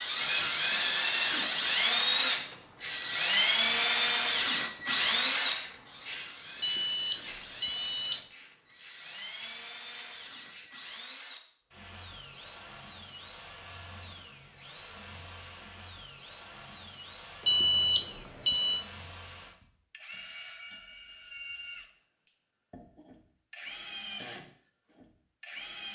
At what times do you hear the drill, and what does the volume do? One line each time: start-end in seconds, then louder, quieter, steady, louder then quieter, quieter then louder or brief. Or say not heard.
0.0-25.9 quieter.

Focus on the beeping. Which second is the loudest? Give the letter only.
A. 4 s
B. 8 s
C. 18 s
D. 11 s
C.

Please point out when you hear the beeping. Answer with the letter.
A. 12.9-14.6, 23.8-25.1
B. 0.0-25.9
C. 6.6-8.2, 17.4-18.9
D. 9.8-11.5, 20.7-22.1
C.